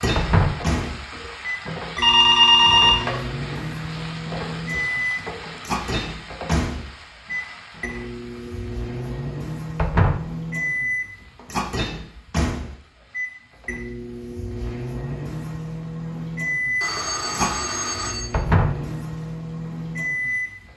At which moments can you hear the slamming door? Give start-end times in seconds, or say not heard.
0.1-0.7, 9.8-10.3, 18.3-18.9.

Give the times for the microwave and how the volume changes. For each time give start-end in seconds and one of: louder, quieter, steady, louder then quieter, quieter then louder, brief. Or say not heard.
0.0-20.7 steady.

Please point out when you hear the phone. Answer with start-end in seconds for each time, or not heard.
1.9-3.3, 16.8-18.4.